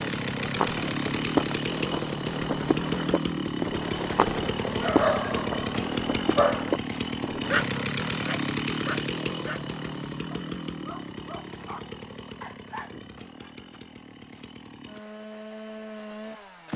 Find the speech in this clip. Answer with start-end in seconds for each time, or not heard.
not heard.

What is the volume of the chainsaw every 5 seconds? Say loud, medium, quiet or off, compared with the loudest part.
loud, loud, medium, medium.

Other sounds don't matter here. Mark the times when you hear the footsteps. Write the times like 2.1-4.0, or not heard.
0.2-7.6.